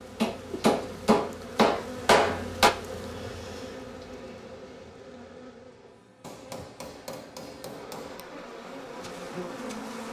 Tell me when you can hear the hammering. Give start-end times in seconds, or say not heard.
0.2-2.7, 6.2-8.2.